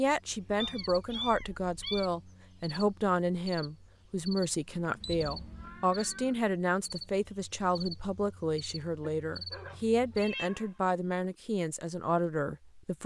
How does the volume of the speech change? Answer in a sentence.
The loudness of the speech stays about the same.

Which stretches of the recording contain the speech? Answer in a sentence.
The speech can be heard from 0.0 to 13.0 s.